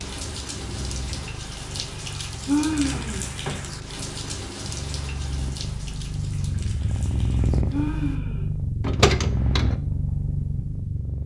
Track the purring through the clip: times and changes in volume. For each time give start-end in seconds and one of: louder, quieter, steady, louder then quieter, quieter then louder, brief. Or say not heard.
0.0-11.2 louder.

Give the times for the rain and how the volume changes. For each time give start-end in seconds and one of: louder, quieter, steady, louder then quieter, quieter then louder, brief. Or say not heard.
0.0-8.2 quieter.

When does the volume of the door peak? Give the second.
9 s.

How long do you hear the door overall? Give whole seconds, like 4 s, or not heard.
2 s.